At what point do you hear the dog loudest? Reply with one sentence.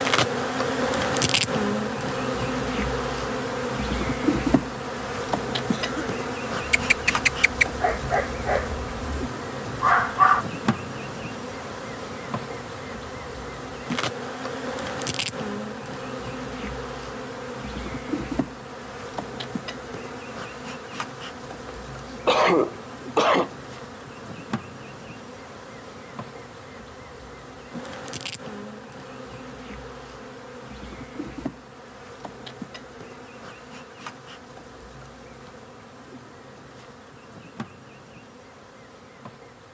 The volume of the dog peaks at 10 seconds.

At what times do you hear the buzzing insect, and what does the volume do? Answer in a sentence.
You can hear the buzzing insect from 0.0 to 39.7 s, getting quieter.